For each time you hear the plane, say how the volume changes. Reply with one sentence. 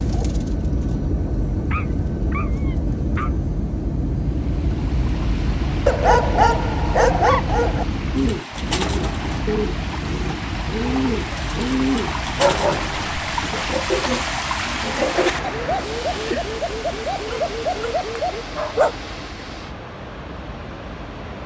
You can hear the plane from 0.0 to 21.4 s, getting quieter.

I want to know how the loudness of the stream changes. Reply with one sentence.
The loudness of the stream goes up, then down.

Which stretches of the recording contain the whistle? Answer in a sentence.
You can't hear the whistle here.